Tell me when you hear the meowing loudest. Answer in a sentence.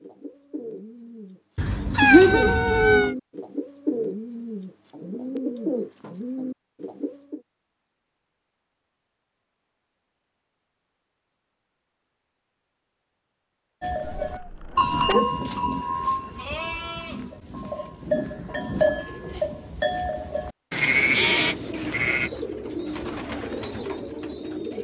The loudest moment of the meowing is at 2 seconds.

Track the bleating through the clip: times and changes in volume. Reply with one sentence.
The bleating can be heard from 13.8 to 22.3 s, getting quieter then louder.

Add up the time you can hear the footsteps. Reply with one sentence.
The footsteps can't be heard in this clip.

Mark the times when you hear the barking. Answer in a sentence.
The barking can't be heard in this clip.